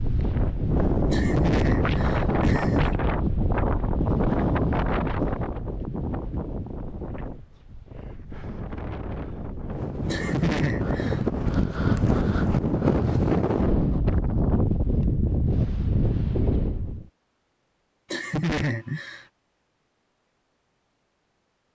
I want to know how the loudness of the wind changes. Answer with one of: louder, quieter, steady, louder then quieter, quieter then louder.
quieter then louder.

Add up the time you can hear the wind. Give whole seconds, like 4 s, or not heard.
17 s.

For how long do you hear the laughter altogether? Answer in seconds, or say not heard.
4 s.